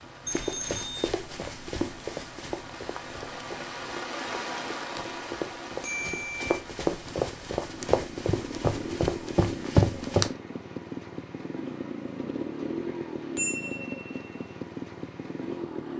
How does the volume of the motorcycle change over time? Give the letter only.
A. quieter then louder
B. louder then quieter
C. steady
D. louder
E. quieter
D.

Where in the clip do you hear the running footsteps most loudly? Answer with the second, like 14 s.
10 s.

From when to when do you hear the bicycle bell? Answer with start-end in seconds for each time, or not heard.
0.2-1.1, 5.8-6.5, 12.8-14.4.